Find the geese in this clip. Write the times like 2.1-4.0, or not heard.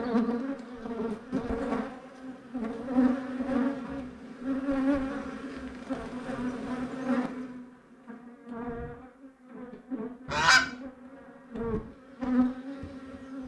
10.2-10.7.